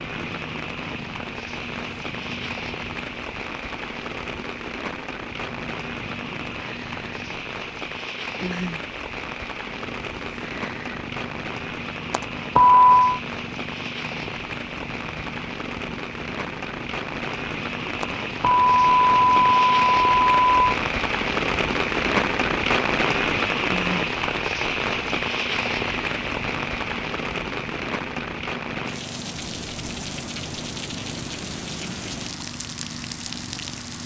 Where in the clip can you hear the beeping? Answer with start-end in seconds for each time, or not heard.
12.1-13.2, 18.0-20.8.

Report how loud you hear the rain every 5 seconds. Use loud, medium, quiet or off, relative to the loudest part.
medium, medium, medium, medium, loud, medium, medium.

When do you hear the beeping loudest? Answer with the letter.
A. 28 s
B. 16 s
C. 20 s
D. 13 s
D.